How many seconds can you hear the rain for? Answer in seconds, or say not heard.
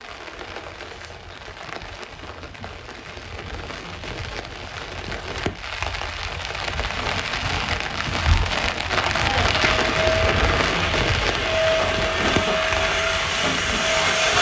14 s.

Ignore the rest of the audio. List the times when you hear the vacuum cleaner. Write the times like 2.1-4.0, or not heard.
9.1-14.3.